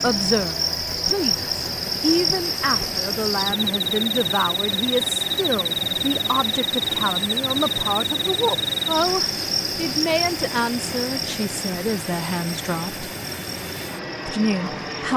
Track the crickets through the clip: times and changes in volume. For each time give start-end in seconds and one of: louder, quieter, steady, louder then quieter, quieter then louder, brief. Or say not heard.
0.0-15.1 quieter.